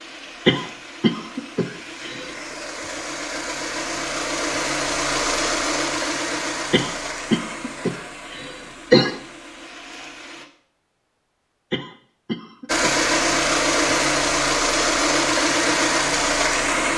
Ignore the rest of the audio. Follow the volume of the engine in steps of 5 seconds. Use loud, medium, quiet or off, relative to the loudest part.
medium, medium, loud, loud.